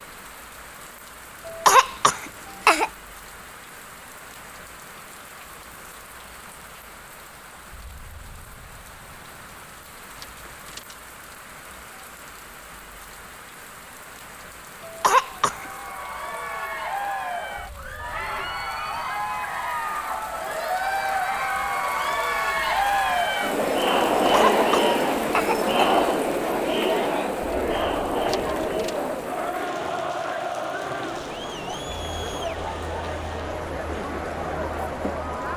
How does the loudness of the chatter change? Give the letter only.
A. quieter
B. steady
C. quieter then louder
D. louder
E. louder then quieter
E.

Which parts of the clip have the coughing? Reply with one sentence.
The coughing can be heard from 1.4 to 2.9 s, from 14.8 to 15.7 s and from 24.2 to 26.1 s.